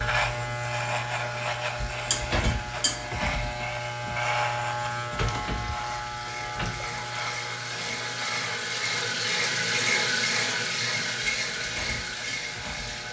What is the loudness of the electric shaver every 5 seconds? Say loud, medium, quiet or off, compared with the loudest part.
loud, medium, quiet.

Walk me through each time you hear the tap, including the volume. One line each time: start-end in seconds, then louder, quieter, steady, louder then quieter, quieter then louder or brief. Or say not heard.
0.0-13.0 louder.